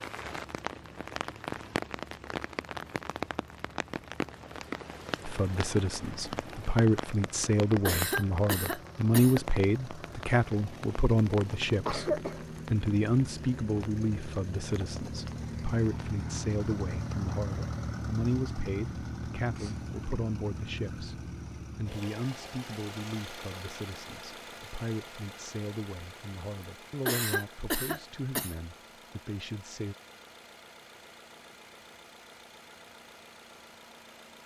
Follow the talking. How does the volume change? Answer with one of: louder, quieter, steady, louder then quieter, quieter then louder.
quieter.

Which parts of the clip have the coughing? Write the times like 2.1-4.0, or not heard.
7.8-9.4, 11.7-12.4, 27.1-28.6.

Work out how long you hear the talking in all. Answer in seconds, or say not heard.
25 s.